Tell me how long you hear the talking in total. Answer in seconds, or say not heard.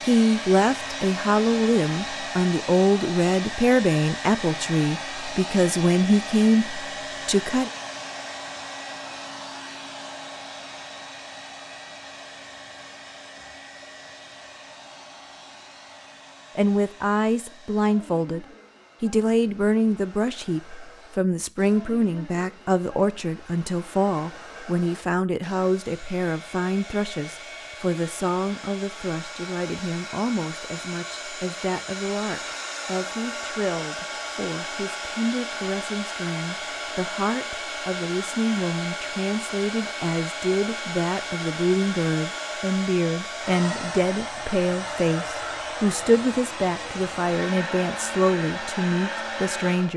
41 s.